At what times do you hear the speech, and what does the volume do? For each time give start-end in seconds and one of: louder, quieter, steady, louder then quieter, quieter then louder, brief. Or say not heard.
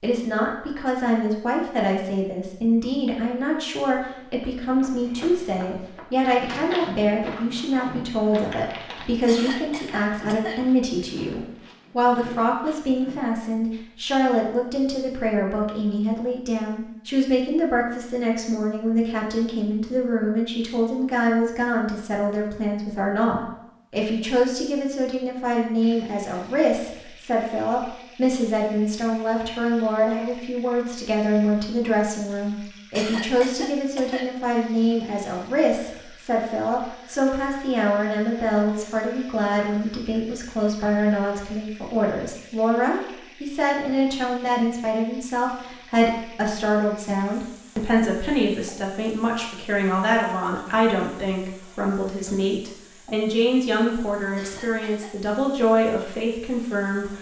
0.0-57.1 steady.